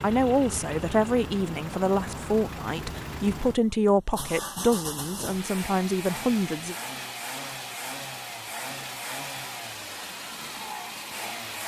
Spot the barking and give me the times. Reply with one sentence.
The barking can't be heard in this clip.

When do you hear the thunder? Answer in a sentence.
You can't hear the thunder here.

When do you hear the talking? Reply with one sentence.
You can hear the talking from 0.0 to 6.8 s.